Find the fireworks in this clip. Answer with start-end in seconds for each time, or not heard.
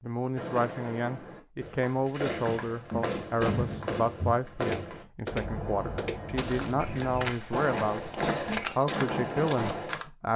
0.3-9.9.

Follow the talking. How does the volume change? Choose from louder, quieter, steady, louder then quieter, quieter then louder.
steady.